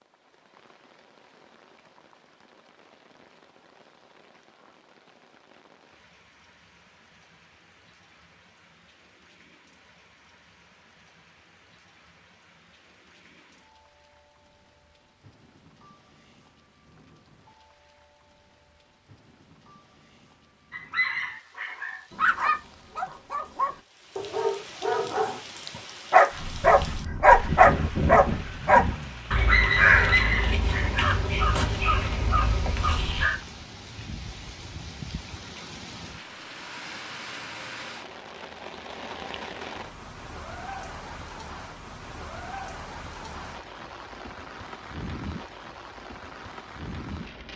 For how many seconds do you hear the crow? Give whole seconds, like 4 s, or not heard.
7 s.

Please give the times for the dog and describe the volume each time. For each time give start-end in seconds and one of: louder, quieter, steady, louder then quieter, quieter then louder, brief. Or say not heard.
20.7-31.7 louder then quieter.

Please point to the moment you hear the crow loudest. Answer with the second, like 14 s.
30 s.